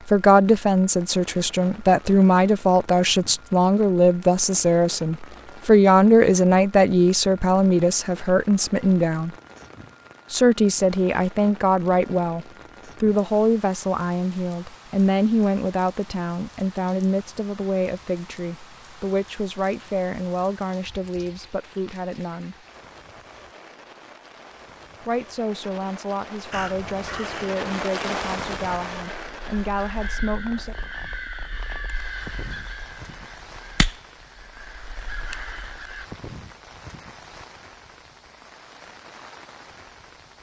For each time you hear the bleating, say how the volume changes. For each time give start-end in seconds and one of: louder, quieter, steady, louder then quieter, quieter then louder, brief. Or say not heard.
not heard.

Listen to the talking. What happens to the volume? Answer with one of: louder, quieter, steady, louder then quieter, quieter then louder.
quieter.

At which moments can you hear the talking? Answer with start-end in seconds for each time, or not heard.
0.1-9.3, 10.3-22.6, 25.0-30.8.